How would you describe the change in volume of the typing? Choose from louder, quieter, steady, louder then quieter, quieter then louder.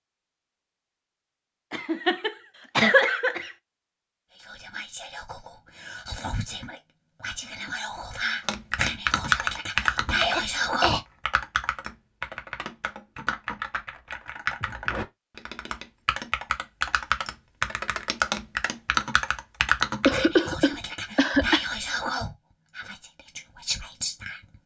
quieter then louder.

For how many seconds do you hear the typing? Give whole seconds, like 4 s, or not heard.
12 s.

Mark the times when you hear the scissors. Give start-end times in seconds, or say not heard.
not heard.